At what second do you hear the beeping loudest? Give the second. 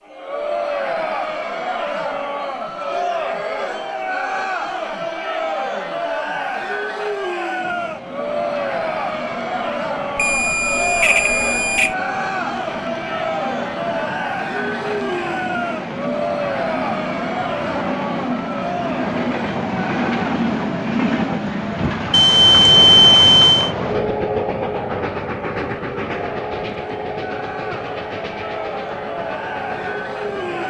23 s.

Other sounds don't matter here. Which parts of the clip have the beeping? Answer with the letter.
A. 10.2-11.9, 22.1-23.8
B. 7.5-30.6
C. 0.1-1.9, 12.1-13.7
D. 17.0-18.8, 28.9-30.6
A.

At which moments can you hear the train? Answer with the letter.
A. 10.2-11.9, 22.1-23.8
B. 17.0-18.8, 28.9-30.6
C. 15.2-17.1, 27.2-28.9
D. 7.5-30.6
D.